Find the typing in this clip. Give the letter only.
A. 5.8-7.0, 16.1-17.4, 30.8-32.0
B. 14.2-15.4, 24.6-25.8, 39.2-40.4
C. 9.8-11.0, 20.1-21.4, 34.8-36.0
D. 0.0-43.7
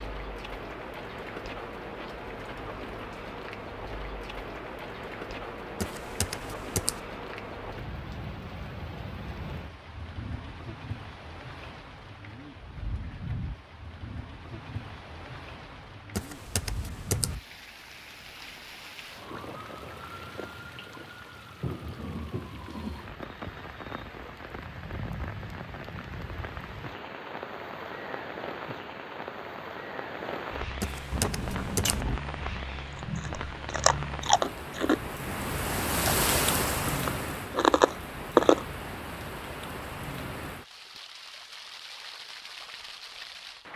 A.